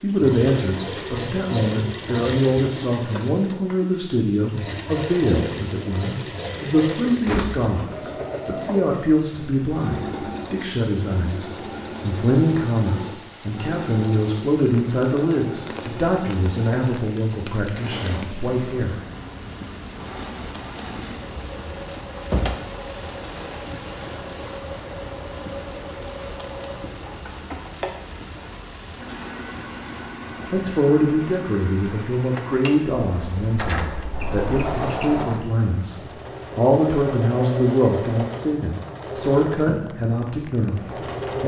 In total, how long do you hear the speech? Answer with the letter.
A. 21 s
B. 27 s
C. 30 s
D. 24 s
C.